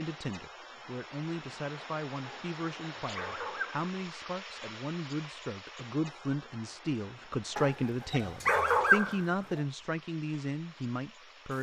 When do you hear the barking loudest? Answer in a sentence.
The loudest moment of the barking is at 9 seconds.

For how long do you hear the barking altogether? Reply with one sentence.
The barking can be heard for 4 seconds in total.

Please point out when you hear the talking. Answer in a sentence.
You can hear the talking from 0.0 to 11.5 s.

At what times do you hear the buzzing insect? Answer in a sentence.
You can't hear the buzzing insect here.